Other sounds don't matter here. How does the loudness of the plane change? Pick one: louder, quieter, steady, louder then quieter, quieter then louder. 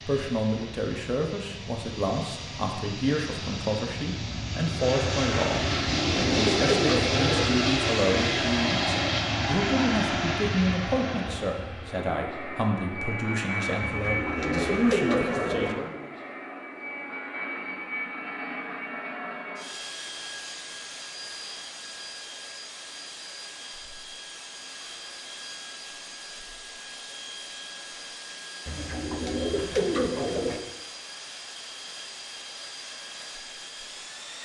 quieter.